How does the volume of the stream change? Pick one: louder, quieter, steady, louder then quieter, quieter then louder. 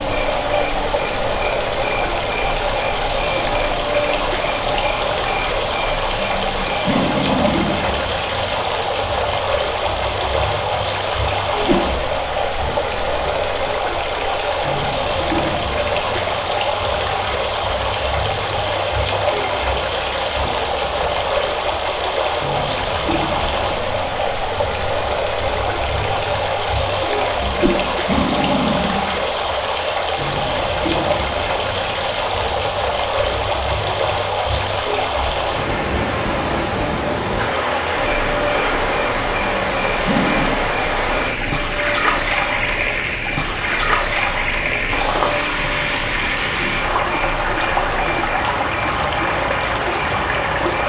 steady.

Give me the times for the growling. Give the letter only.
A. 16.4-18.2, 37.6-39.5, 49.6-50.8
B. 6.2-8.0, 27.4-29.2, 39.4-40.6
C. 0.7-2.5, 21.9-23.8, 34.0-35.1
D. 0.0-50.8
B.